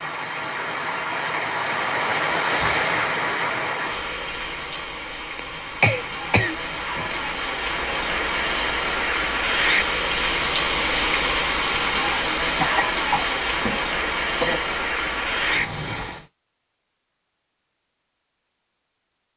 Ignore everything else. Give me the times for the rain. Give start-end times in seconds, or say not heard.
0.0-16.2.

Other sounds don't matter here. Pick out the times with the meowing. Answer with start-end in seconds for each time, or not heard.
not heard.